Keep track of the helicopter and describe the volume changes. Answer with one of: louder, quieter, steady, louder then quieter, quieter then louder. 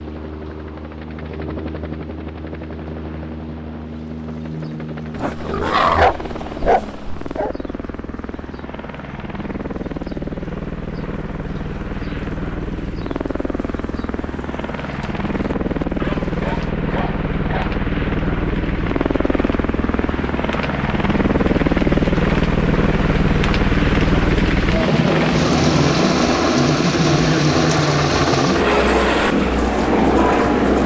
louder.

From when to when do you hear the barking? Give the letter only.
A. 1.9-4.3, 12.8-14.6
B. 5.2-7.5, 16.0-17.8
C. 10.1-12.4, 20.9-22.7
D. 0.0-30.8
B.